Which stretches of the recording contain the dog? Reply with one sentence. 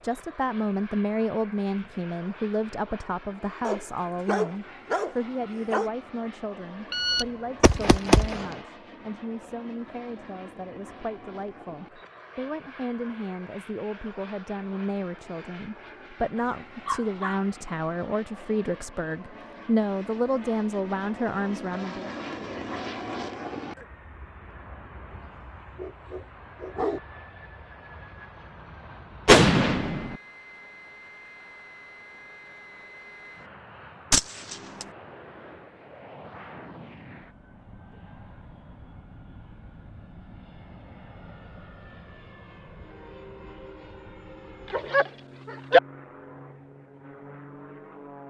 The dog can be heard from 3.6 to 5.9 s, from 16.4 to 17.4 s, from 25.1 to 27.0 s and from 44.7 to 45.8 s.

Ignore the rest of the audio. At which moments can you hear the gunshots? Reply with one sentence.
You can hear the gunshots from 6.9 to 8.6 s, from 29.2 to 30.1 s and from 34.1 to 34.9 s.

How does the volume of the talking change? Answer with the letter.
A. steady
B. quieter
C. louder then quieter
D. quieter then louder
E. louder
D.